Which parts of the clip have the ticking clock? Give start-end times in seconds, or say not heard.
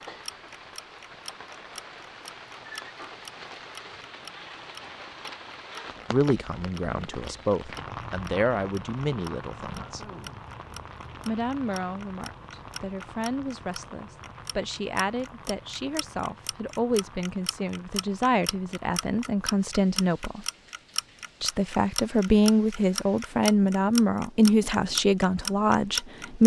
0.0-26.4.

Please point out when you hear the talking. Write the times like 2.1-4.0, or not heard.
6.1-10.0, 11.2-20.4, 21.4-26.4.